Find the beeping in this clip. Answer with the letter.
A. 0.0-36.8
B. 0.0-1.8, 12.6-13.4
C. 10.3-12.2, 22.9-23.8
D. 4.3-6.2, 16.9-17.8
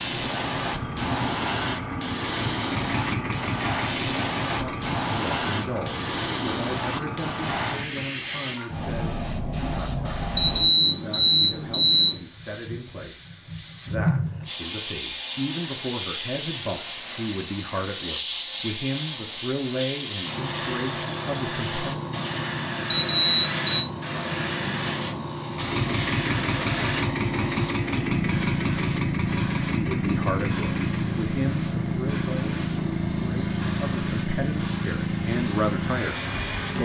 C.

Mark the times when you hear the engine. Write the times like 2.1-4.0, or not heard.
0.0-8.2, 25.5-36.8.